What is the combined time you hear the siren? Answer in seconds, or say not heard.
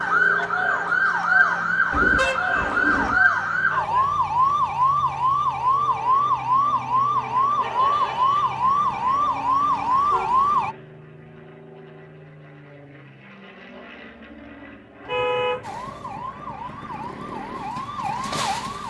14 s.